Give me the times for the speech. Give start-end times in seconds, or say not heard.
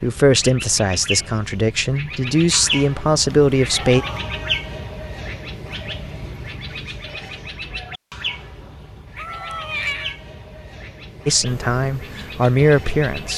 0.0-4.0, 11.2-13.3.